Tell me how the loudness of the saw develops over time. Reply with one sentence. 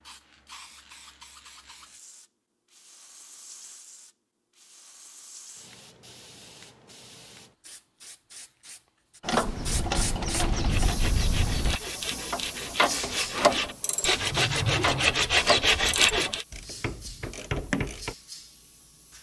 The volume of the saw goes up.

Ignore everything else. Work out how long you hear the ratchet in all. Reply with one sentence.
The ratchet can be heard for 9 seconds in total.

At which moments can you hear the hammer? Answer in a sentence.
The hammer can't be heard in this clip.